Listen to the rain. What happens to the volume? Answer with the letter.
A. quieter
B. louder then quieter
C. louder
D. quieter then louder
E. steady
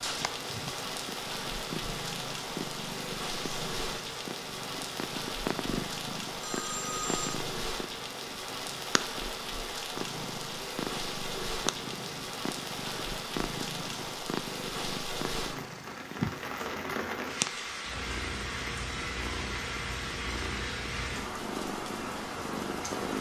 E.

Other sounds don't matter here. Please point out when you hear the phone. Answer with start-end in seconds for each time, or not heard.
6.4-7.4.